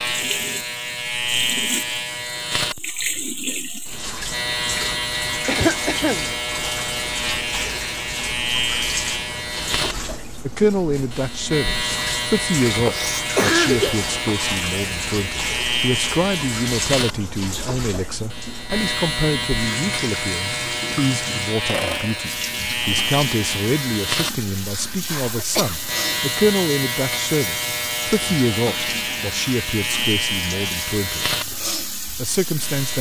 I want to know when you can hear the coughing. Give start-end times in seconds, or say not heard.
5.5-6.2, 12.3-14.1, 24.7-25.8.